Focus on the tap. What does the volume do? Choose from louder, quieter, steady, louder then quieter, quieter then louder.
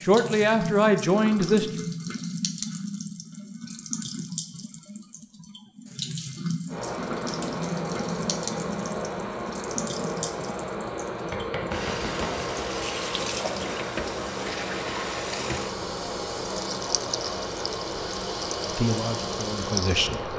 steady.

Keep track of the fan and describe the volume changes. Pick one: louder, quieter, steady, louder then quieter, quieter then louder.
steady.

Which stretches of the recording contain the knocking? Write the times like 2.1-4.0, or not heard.
11.3-12.5.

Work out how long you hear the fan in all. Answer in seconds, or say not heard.
14 s.